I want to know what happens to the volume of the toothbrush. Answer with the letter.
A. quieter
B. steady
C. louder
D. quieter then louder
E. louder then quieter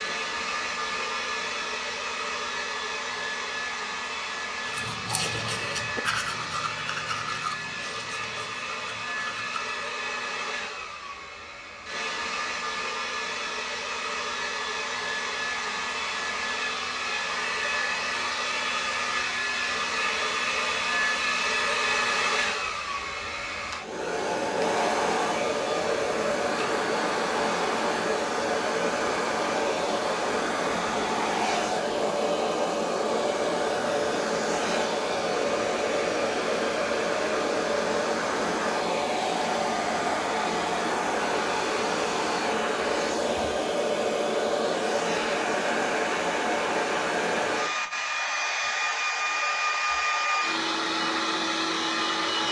A.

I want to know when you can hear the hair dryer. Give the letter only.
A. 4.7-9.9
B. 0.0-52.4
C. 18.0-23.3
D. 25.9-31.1
B.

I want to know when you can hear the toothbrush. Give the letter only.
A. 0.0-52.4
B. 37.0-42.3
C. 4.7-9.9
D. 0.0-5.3
C.